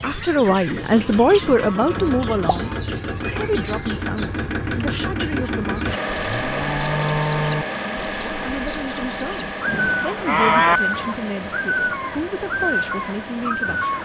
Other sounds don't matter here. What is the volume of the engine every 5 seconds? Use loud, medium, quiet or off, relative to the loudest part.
loud, loud, medium.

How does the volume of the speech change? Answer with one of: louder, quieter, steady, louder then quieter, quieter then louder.
quieter.